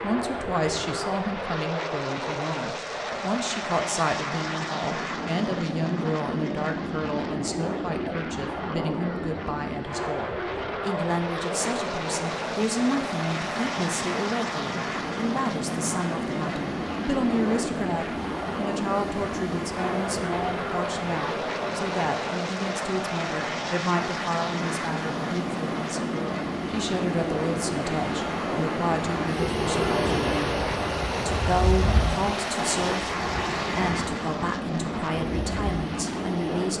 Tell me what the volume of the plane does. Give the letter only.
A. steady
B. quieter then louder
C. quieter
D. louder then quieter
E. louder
A.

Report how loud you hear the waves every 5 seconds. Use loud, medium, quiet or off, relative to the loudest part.
off, off, medium, medium, medium, loud, loud, medium.